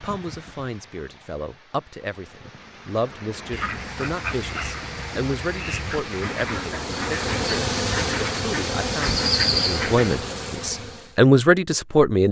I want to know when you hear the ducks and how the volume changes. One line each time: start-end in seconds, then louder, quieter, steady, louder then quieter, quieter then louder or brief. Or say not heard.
3.5-10.2 steady.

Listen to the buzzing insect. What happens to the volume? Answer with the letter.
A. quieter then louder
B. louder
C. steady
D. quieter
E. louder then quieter
B.